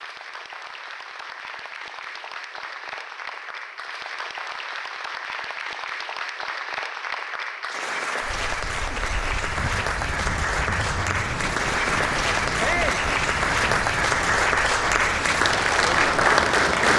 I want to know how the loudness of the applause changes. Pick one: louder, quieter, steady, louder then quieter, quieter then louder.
louder.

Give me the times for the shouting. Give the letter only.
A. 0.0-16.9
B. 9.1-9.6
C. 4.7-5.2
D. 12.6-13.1
D.